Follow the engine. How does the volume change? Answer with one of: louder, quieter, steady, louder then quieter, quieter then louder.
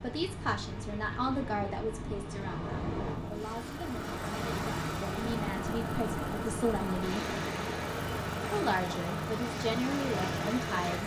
steady.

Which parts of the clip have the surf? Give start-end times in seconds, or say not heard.
0.0-11.0.